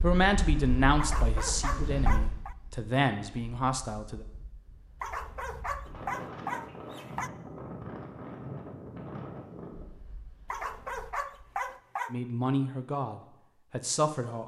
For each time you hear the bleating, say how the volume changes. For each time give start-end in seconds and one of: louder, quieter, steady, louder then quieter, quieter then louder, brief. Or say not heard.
not heard.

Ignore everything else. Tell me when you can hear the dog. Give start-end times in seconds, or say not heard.
1.0-2.5, 5.0-7.3, 10.5-12.2.